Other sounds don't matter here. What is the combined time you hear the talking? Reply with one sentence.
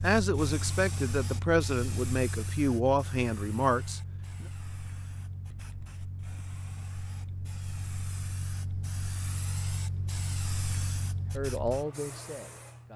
The talking can be heard for 6 seconds in total.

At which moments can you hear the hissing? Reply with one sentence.
You can hear the hissing from 0.0 to 12.9 s.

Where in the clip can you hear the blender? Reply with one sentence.
You can't hear the blender here.